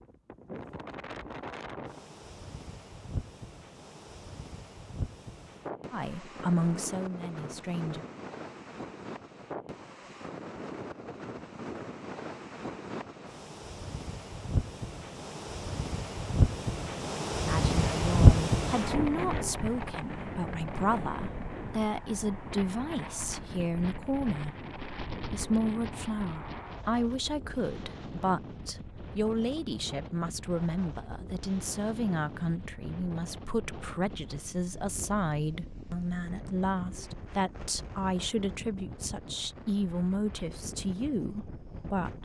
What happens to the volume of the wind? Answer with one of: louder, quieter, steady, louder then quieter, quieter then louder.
louder then quieter.